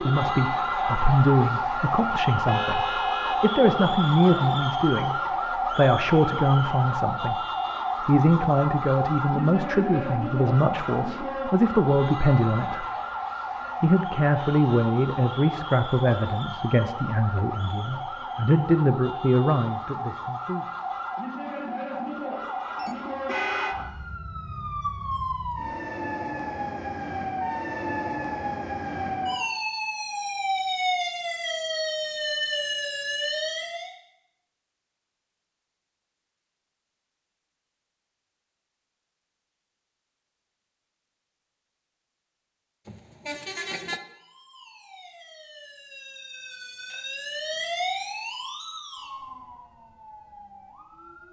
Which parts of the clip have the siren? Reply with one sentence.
You can hear the siren from 0.0 to 33.9 s and from 44.0 to 51.2 s.